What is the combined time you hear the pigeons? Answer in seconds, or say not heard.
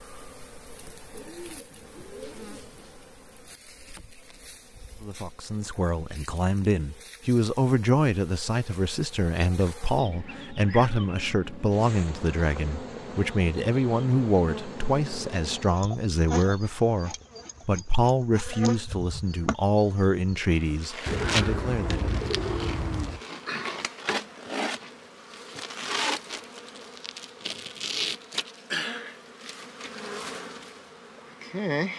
4 s.